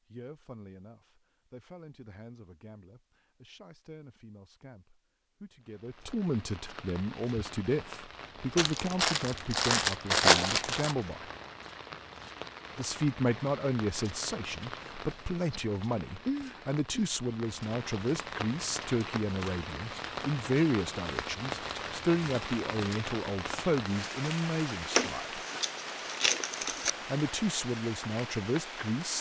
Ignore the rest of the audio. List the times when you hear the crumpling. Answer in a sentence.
The crumpling can be heard from 8.6 to 10.9 s and from 24.9 to 26.9 s.